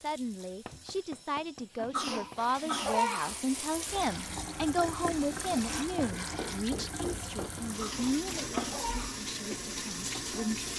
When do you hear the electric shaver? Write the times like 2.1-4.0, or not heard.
not heard.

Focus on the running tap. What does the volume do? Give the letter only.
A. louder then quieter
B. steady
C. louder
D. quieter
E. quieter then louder
C.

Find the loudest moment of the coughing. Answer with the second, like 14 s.
3 s.